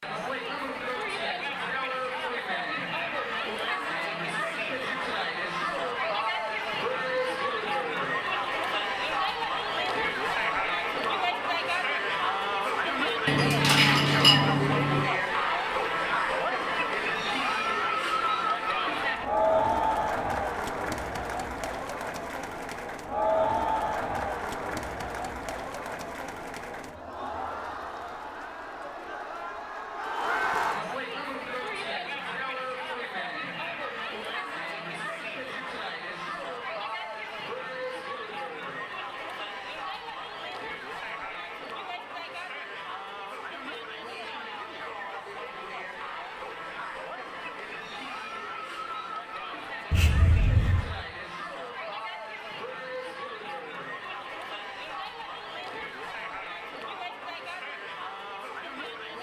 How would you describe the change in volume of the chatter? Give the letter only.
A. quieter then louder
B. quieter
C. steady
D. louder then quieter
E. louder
B.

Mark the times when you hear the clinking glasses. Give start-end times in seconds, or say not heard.
13.2-15.1.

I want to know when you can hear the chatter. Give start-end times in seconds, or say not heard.
0.0-59.1.